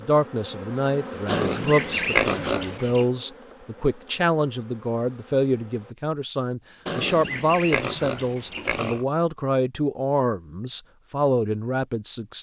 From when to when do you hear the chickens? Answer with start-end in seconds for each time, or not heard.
not heard.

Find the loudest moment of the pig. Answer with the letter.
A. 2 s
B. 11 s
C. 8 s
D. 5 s
A.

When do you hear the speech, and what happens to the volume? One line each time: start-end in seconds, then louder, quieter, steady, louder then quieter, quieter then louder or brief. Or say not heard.
0.0-12.3 steady.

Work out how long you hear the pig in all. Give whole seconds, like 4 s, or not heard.
4 s.